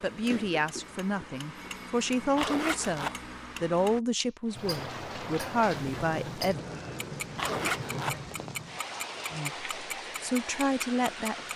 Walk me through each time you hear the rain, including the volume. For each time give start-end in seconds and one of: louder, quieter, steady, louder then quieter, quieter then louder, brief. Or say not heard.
4.4-11.5 steady.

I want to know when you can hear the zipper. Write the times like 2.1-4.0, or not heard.
2.4-3.1, 7.3-8.2.